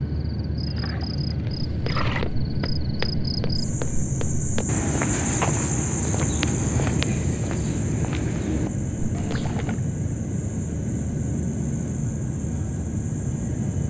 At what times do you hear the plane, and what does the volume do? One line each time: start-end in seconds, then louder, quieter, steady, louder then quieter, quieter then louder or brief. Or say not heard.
0.0-13.8 steady.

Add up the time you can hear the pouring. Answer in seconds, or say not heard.
2 s.